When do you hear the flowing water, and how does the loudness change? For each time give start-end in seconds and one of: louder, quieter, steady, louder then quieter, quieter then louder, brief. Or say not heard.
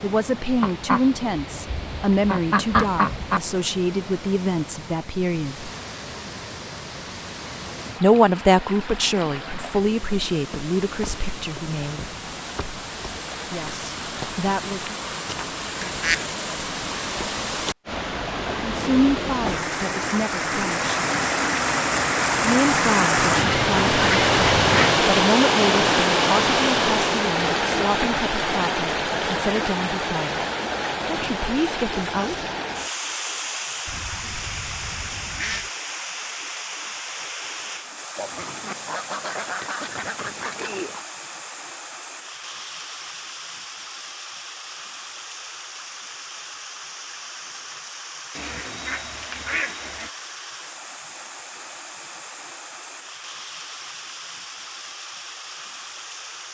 0.0-56.4 louder then quieter.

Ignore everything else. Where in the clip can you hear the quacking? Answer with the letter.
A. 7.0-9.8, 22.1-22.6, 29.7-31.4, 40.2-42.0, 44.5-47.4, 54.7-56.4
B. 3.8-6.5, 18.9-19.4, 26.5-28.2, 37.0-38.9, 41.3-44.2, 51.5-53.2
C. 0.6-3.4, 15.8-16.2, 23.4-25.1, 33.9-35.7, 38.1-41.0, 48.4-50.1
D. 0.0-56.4
C.